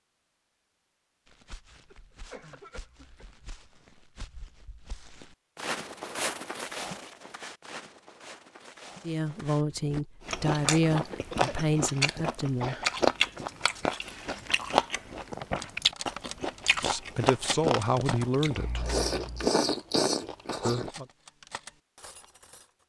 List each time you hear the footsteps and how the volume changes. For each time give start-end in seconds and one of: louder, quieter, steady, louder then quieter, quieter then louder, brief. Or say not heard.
1.2-10.1 louder then quieter.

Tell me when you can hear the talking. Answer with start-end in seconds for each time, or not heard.
9.1-12.8, 16.8-18.9, 20.6-21.1.